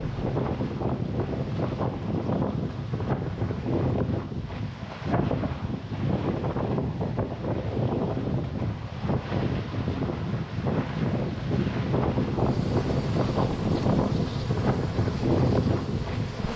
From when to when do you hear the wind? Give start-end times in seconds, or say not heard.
0.0-16.5.